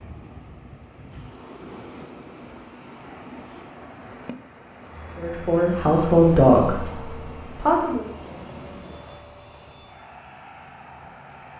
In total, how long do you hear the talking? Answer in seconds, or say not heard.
3 s.